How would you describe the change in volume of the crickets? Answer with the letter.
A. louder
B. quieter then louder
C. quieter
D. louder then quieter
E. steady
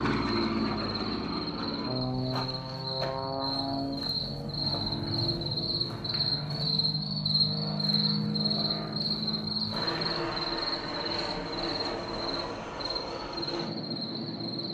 D.